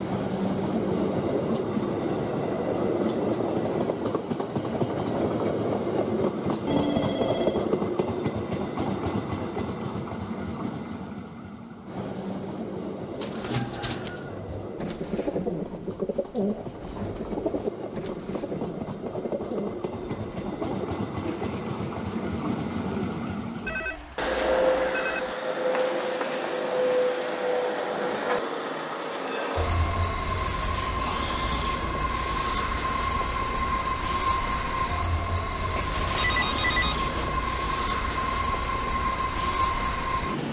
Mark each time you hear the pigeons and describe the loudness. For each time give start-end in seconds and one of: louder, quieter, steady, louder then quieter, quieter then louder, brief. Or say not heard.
12.9-24.2 quieter.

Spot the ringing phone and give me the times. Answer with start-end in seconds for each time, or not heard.
6.7-7.7, 23.6-25.4, 35.8-37.4.